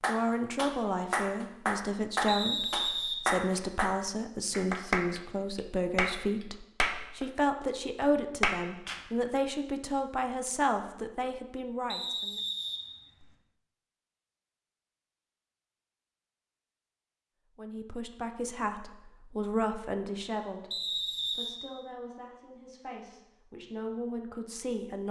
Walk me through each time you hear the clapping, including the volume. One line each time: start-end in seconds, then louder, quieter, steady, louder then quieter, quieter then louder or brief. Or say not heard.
0.0-9.1 steady.